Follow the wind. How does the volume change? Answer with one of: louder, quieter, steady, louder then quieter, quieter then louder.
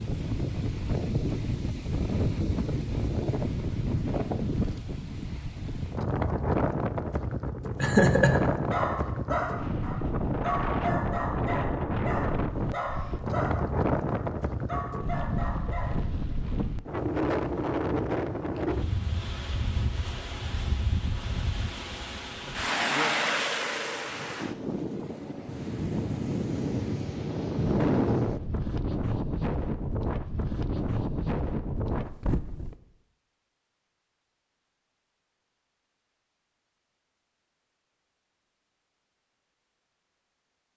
steady.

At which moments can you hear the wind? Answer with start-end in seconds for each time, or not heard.
0.0-32.8.